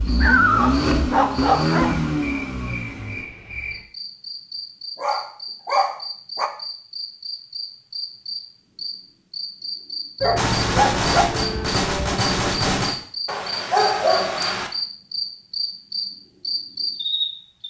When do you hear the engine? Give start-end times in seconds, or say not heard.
0.0-3.2.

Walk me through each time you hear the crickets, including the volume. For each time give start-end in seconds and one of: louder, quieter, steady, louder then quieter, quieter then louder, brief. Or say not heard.
0.0-17.6 louder.